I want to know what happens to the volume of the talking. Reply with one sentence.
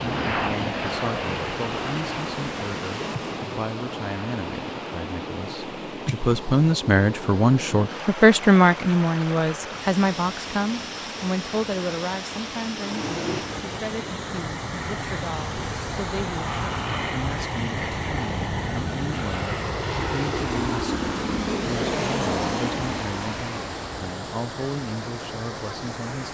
The volume of the talking goes up, then down.